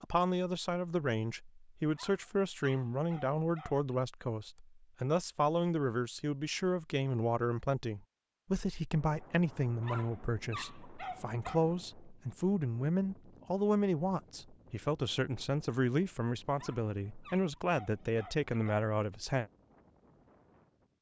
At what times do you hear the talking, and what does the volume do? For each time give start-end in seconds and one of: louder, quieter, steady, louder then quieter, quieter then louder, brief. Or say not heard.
0.0-19.5 steady.